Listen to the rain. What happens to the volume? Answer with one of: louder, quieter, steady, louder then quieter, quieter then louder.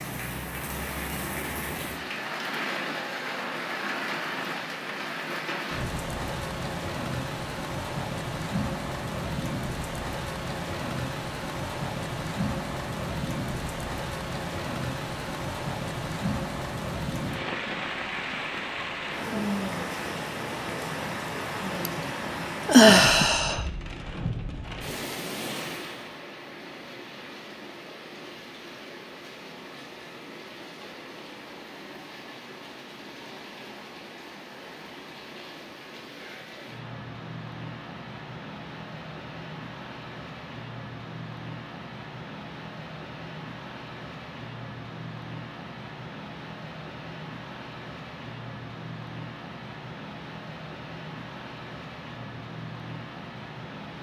quieter.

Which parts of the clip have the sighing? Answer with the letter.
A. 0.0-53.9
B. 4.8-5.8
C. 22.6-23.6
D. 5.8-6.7
C.